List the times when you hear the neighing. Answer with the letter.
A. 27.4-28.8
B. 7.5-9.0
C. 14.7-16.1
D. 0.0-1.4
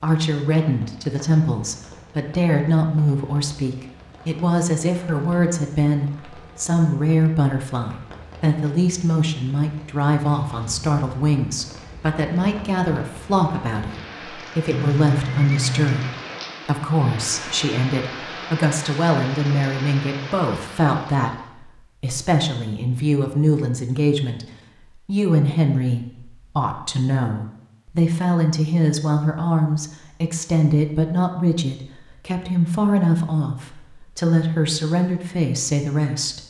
C.